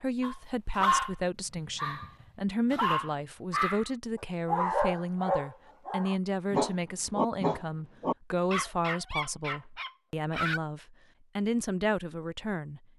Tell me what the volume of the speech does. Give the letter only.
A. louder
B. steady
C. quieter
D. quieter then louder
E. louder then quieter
B.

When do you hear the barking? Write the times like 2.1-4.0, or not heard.
0.2-10.6.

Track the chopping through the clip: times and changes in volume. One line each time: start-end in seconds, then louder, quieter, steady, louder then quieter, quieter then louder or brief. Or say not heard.
not heard.